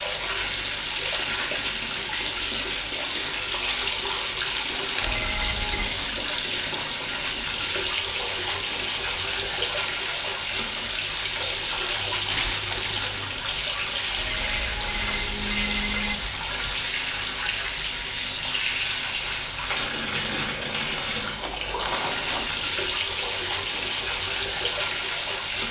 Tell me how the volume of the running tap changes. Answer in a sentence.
The loudness of the running tap stays about the same.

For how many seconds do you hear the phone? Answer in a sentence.
The phone can be heard for 3 seconds in total.